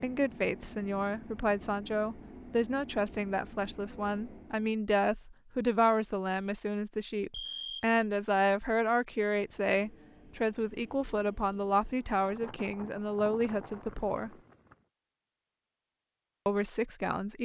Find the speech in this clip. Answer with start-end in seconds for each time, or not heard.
0.0-14.3, 16.4-17.3.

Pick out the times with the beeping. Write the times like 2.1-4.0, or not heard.
7.3-8.0.